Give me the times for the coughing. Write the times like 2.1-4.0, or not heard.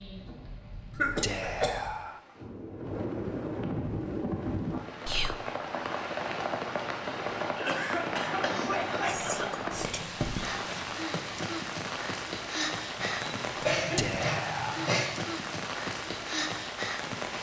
0.9-1.9, 7.0-9.5, 12.9-15.1.